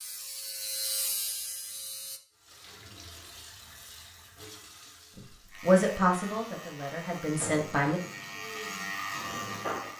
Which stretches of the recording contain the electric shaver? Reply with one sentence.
You can hear the electric shaver from 0.0 to 2.2 s and from 5.5 to 9.9 s.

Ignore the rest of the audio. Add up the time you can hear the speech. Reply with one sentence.
You can hear the speech for 3 seconds altogether.